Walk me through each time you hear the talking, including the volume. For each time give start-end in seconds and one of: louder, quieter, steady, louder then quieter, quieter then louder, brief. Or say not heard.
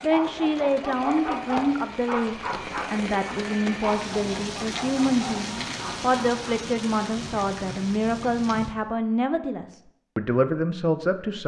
0.0-11.4 steady.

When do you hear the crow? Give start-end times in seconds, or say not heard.
not heard.